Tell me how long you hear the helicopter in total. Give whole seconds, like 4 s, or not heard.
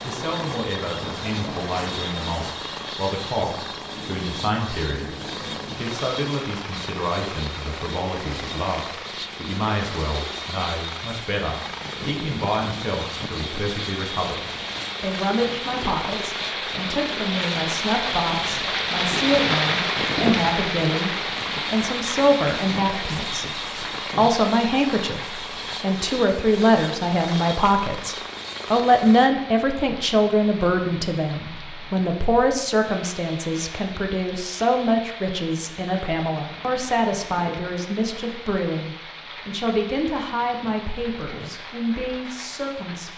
29 s.